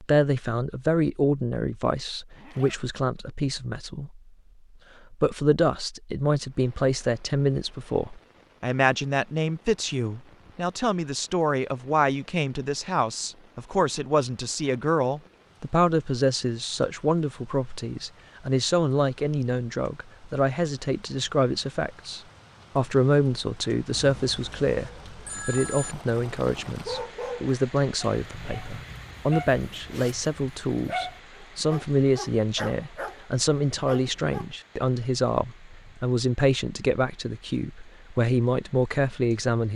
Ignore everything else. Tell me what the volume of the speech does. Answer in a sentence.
The volume of the speech stays about the same.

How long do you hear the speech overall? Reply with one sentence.
You can hear the speech for 39 seconds altogether.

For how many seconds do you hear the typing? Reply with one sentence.
You can't hear the typing here.